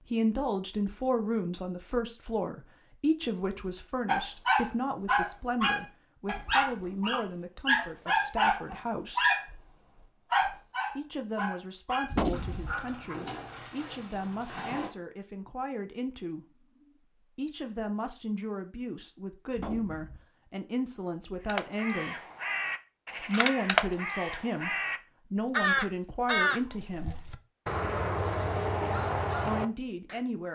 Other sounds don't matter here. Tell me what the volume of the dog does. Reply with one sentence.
The loudness of the dog goes down.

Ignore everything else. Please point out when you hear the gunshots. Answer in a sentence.
The gunshots can be heard from 12.1 to 12.8 s and from 19.6 to 20.2 s.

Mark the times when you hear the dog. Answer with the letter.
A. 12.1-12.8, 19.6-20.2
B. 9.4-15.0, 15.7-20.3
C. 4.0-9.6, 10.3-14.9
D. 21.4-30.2
C.